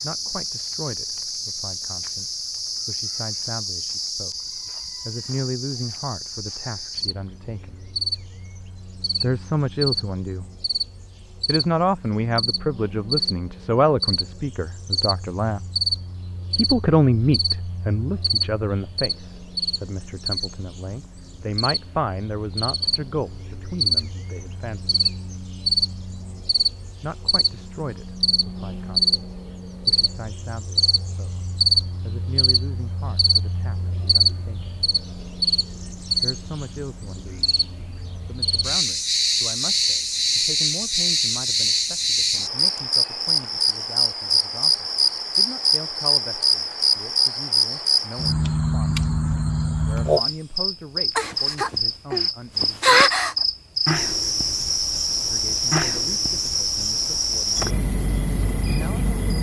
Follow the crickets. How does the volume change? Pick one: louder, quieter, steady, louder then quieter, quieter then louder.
louder.